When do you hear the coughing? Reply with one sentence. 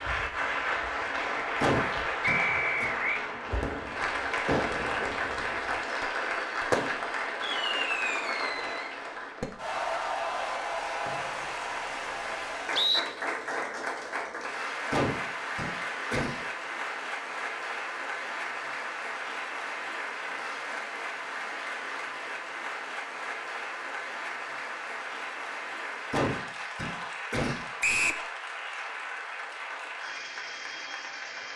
The coughing can be heard from 1.6 to 2.9 s, from 14.9 to 16.4 s and from 26.1 to 27.6 s.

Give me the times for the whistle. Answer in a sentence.
You can hear the whistle from 2.2 to 3.2 s, from 11.1 to 13.0 s and from 27.8 to 28.2 s.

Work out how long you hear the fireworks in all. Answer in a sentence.
The fireworks can be heard for 6 seconds in total.